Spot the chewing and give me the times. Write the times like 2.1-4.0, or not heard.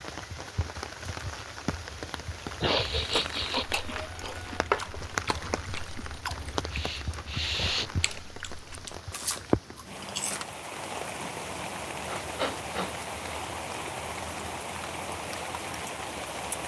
3.0-10.4.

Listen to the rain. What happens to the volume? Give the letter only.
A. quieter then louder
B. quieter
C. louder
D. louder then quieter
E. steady
E.